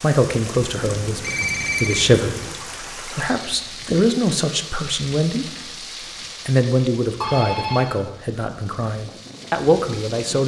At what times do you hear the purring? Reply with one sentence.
The purring can't be heard in this clip.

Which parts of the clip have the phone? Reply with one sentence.
The phone can be heard from 0.7 to 2.5 s and from 7.2 to 7.8 s.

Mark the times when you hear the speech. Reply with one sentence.
The speech can be heard from 0.0 to 5.7 s and from 6.5 to 10.4 s.